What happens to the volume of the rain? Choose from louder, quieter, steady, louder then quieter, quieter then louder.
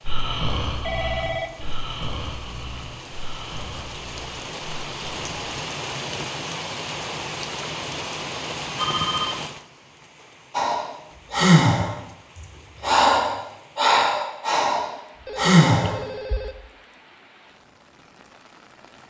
louder then quieter.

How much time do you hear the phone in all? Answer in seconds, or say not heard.
3 s.